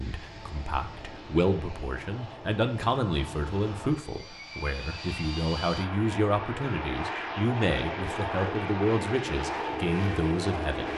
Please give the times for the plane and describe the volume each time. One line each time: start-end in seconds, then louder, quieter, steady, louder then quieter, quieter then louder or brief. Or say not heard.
0.0-10.9 louder.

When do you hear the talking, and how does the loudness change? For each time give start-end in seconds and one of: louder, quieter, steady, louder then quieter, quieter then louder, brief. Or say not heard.
0.0-10.9 steady.